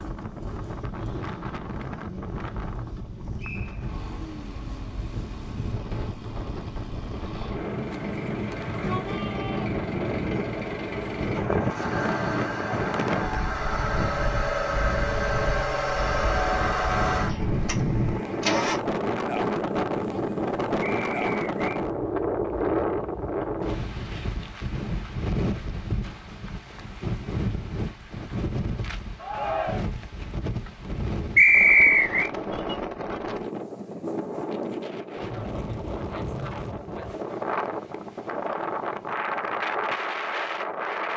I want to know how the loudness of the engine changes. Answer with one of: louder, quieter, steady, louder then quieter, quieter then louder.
louder.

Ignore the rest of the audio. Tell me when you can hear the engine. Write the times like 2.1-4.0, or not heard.
0.0-18.8.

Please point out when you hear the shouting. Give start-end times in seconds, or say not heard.
8.7-9.8, 29.1-29.9.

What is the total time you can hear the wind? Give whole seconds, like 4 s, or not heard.
41 s.